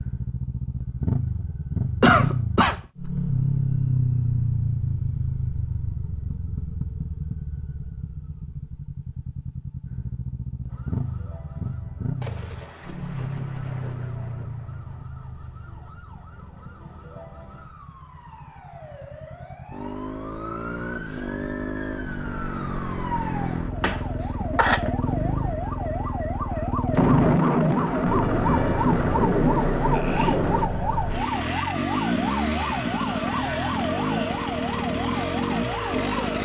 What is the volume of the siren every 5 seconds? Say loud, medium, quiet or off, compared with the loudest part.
off, off, quiet, quiet, medium, loud, loud, loud.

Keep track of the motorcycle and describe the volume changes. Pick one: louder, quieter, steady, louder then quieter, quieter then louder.
quieter then louder.